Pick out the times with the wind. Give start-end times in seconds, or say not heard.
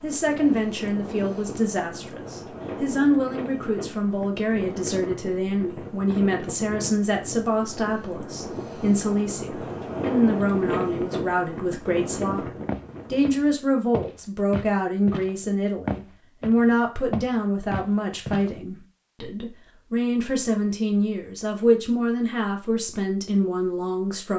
0.0-13.3.